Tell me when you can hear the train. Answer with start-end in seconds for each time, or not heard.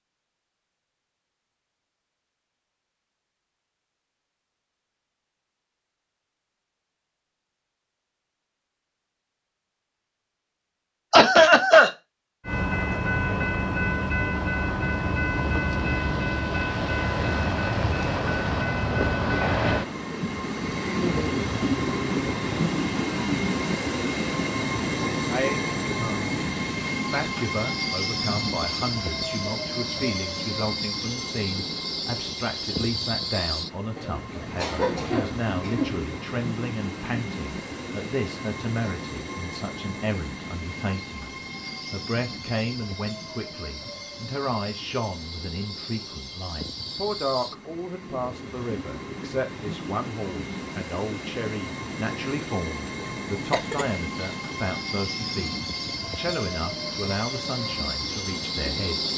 12.4-59.1.